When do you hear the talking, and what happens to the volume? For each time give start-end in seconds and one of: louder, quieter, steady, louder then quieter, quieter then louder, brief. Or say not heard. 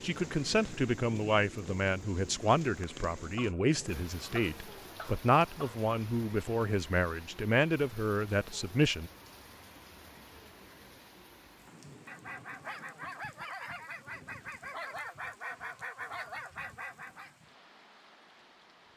0.0-9.1 steady.